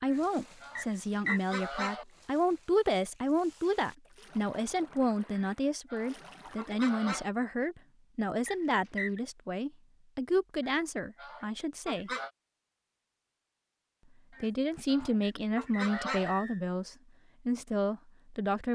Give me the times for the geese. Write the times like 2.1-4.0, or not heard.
0.1-2.0, 5.3-7.3, 10.6-12.3, 14.3-16.4.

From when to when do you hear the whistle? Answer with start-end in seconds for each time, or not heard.
0.8-1.4, 8.4-9.2, 15.2-16.6.